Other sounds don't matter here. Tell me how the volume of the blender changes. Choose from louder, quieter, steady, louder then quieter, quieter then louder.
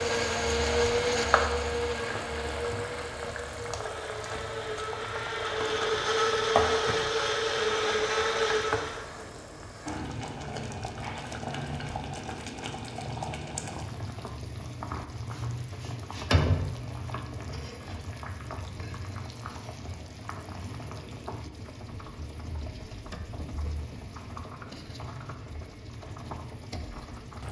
quieter then louder.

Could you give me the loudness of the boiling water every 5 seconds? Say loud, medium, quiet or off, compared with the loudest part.
loud, loud, loud, loud, medium, medium.